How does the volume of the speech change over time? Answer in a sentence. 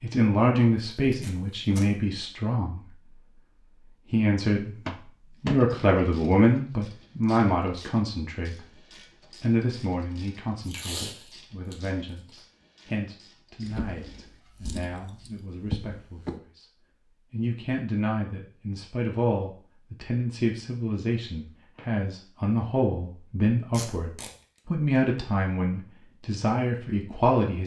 The loudness of the speech goes down, then up.